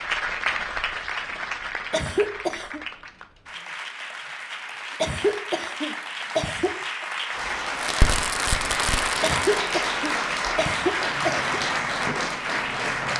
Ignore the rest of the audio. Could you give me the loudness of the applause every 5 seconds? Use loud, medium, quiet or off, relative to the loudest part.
medium, loud, loud.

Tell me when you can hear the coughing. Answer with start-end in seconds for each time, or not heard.
1.9-2.8, 5.0-7.0, 9.2-11.6.